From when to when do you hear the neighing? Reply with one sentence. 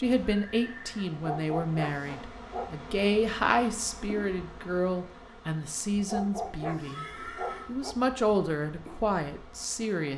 You can hear the neighing from 0.3 to 1.1 s and from 6.8 to 7.7 s.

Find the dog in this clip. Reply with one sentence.
The dog can be heard from 1.1 to 2.9 s and from 6.0 to 8.0 s.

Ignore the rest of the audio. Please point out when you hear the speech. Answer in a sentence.
You can hear the speech from 0.0 to 7.0 s and from 7.7 to 10.1 s.